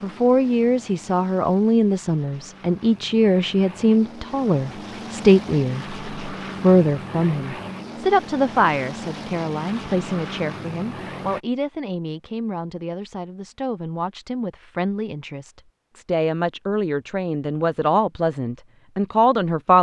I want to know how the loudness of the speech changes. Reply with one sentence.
The volume of the speech goes down, then up.